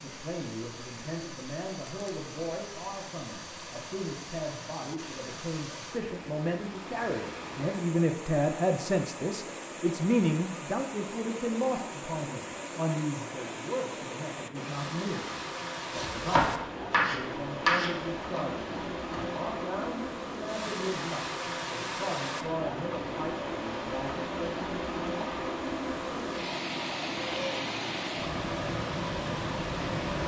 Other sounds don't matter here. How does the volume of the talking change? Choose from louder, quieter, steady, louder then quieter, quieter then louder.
louder then quieter.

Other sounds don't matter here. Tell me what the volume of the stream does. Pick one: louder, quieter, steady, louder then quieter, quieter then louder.
louder.